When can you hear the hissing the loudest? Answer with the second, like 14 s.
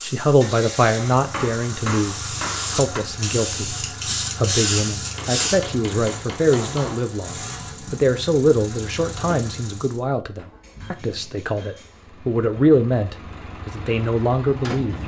5 s.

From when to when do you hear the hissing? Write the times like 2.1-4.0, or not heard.
0.0-5.6.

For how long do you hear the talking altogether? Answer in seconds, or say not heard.
15 s.